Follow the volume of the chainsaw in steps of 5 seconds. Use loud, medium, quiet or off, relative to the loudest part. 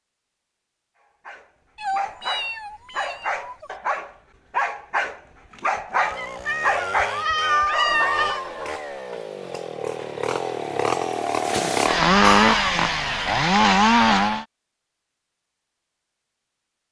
off, quiet, loud, off.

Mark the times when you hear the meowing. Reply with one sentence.
The meowing can be heard from 1.8 to 3.7 s, from 6.0 to 8.4 s and from 12.2 to 13.3 s.